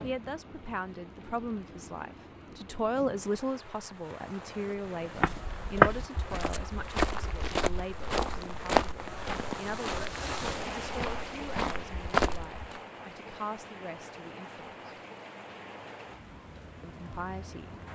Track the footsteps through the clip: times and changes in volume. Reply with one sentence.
You can hear the footsteps from 4.7 to 12.8 s, getting quieter then louder.